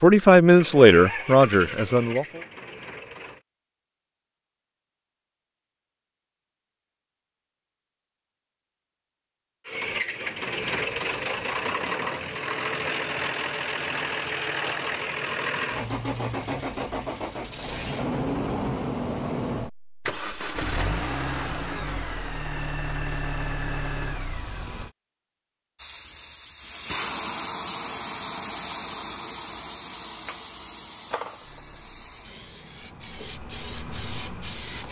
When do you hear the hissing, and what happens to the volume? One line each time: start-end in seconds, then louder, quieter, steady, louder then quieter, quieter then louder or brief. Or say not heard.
25.8-34.8 quieter.